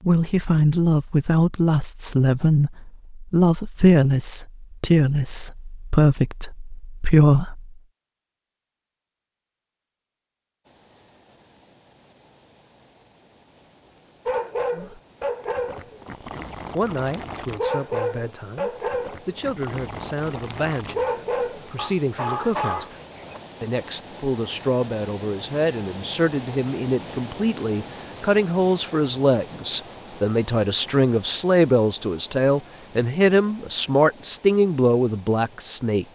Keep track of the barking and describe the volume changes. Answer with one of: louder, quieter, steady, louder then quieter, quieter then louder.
steady.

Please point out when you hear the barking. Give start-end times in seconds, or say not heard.
14.2-23.4.